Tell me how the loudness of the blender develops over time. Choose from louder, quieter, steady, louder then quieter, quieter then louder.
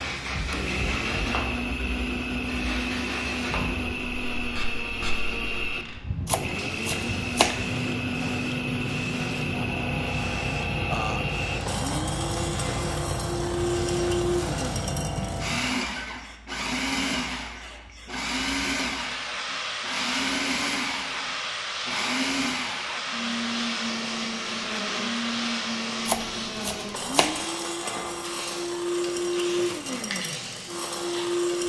steady.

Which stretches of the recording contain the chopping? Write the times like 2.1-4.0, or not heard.
6.2-7.7, 26.1-27.4.